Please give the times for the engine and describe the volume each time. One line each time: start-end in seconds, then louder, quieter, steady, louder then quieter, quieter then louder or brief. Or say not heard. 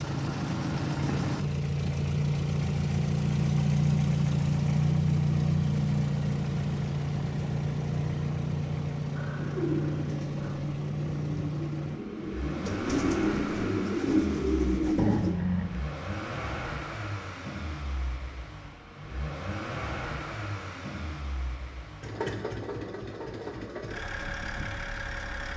0.0-25.5 quieter.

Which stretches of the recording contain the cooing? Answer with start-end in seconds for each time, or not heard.
9.3-15.3.